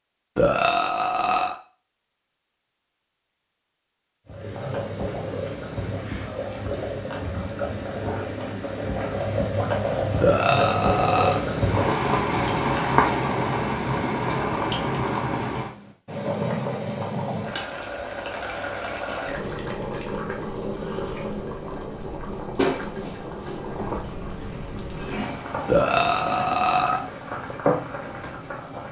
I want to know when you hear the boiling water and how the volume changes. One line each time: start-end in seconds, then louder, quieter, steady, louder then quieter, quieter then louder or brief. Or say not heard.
4.2-28.8 louder then quieter.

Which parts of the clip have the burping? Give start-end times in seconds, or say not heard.
0.3-1.6, 10.2-11.4, 25.6-27.1.